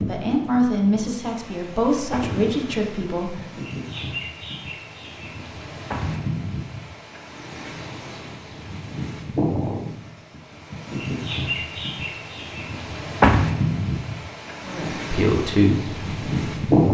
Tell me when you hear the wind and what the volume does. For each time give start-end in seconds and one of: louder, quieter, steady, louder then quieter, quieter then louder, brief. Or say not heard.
0.0-16.8 louder.